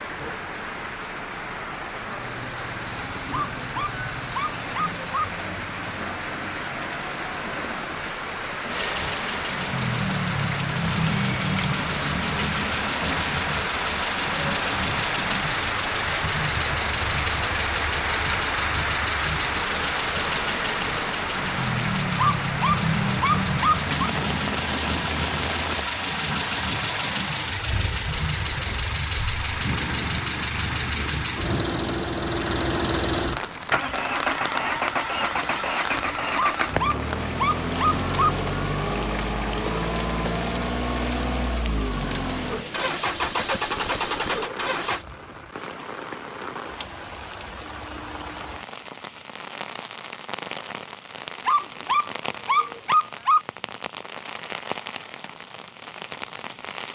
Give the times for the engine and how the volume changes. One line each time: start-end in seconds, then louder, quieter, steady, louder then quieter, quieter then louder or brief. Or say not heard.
8.7-45.0 steady.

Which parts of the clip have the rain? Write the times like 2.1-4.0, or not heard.
0.0-56.9.